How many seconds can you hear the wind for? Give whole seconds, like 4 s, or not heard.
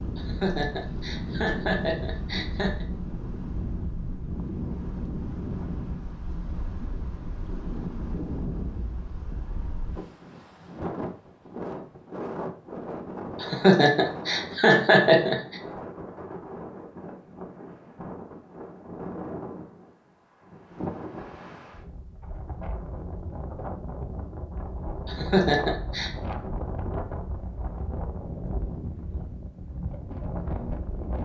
31 s.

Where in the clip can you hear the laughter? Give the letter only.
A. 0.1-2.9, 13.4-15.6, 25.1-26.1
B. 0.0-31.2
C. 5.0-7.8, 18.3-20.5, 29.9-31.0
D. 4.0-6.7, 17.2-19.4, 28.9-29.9
A.